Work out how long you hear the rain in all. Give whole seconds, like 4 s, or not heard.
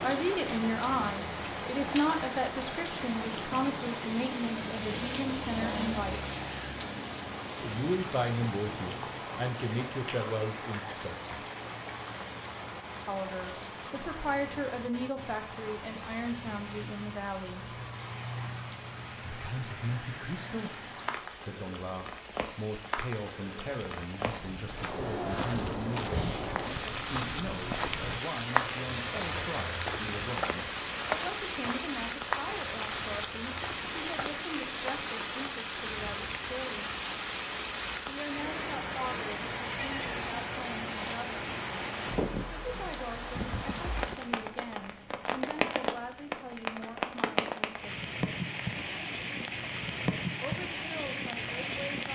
52 s.